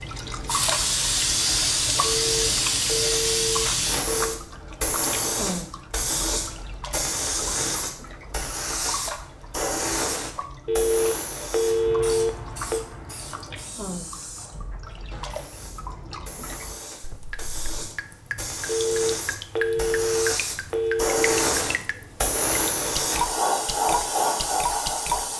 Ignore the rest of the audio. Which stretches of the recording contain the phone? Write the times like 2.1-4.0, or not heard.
2.0-4.4, 10.7-12.8, 18.6-21.4.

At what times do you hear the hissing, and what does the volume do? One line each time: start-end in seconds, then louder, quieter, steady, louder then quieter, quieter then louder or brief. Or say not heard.
0.0-25.3 quieter then louder.